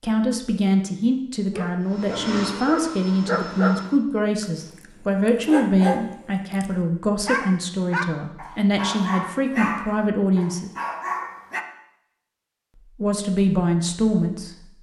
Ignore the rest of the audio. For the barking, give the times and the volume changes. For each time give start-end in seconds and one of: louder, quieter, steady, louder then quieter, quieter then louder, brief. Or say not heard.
1.5-11.7 steady.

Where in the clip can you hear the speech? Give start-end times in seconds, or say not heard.
0.0-10.7, 12.9-14.6.